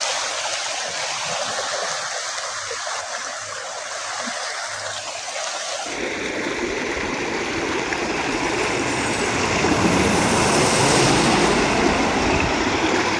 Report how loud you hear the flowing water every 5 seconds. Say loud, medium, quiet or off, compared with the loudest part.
medium, loud, loud.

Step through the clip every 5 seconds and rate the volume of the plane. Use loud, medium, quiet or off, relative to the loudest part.
off, medium, loud.